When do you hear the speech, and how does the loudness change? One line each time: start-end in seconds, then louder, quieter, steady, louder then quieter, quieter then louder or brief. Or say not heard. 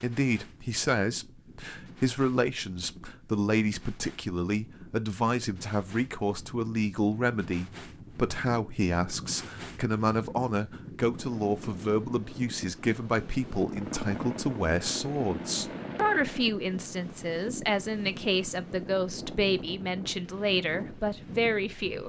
0.0-22.0 steady.